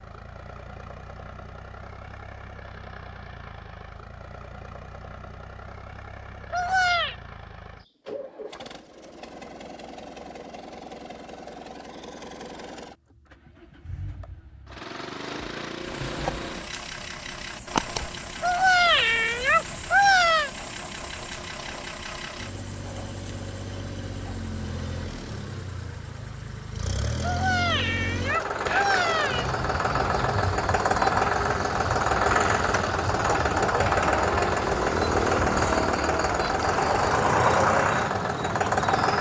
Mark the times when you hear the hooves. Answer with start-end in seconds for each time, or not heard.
not heard.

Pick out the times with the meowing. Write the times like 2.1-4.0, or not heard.
6.5-7.2, 18.4-20.5, 27.2-29.4.